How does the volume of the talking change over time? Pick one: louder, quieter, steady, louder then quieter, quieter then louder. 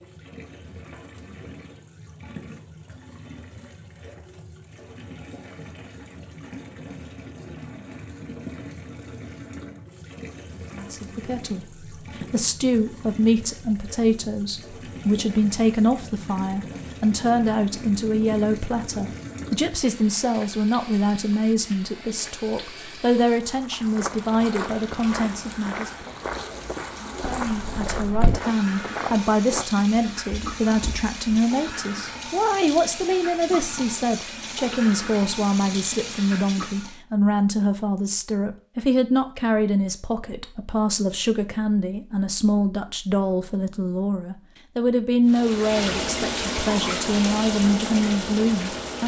steady.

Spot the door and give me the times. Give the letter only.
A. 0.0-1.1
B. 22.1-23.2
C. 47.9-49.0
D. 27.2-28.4
D.